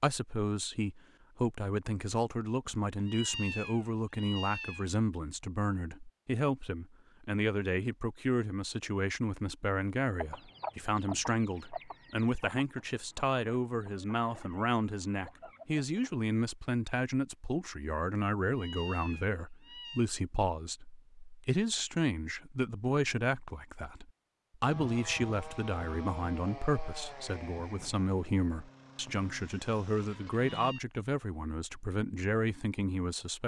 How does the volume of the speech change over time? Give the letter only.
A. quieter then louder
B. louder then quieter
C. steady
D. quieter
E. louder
C.